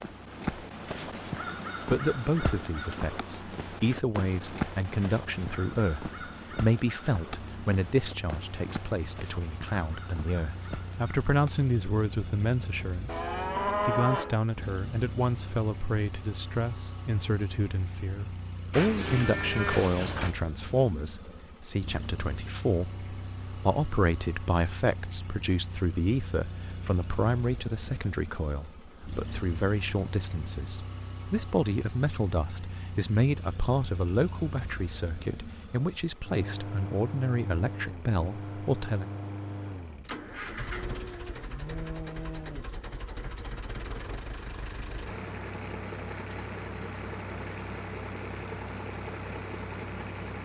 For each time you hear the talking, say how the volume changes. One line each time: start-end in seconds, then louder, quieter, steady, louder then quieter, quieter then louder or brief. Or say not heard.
1.9-39.1 steady.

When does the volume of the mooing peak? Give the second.
14 s.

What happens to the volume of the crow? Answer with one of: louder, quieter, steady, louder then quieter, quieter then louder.
quieter.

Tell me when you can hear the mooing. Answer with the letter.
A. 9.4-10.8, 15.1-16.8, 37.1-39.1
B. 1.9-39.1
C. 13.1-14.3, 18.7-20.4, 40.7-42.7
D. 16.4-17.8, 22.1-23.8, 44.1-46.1
C.